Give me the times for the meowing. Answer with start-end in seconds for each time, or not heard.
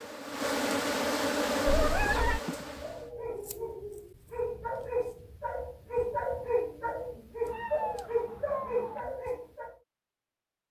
1.6-2.4, 7.5-9.0.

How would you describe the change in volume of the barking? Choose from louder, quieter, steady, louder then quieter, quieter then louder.
louder.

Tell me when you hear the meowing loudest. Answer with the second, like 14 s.
2 s.